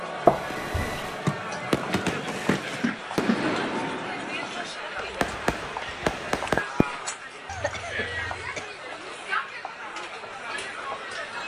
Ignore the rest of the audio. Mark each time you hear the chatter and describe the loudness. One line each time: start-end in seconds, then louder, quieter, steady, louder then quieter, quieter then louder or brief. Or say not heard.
0.0-11.4 steady.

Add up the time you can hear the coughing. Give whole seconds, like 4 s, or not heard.
2 s.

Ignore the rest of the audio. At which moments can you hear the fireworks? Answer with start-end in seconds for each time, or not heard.
0.5-7.0.